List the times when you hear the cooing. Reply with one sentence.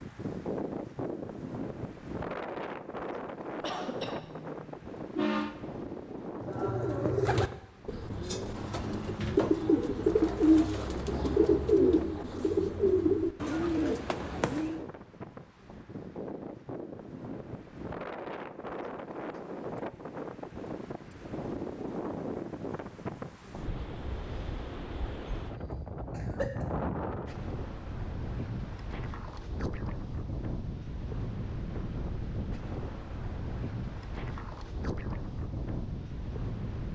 The cooing can be heard from 6.4 to 14.8 s.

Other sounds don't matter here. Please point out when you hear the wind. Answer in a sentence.
You can hear the wind from 0.0 to 36.9 s.